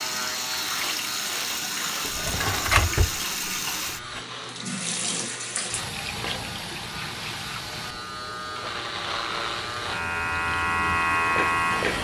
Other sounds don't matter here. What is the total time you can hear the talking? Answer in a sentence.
You can't hear the talking here.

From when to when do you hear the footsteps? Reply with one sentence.
The footsteps can't be heard in this clip.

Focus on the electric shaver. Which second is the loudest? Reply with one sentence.
The loudest moment of the electric shaver is at 11 seconds.